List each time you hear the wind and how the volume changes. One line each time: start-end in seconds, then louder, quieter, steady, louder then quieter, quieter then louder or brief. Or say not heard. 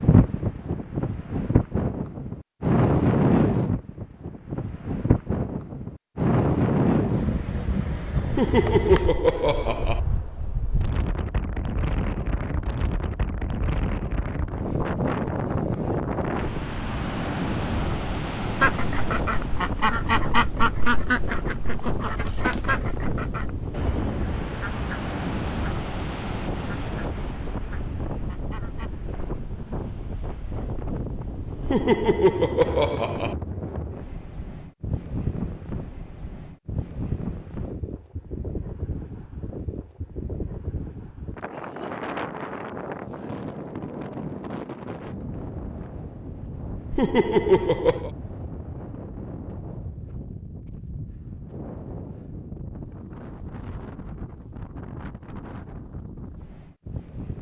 0.0-57.3 quieter.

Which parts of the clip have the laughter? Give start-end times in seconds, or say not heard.
8.3-10.0, 31.6-33.4, 46.9-48.1.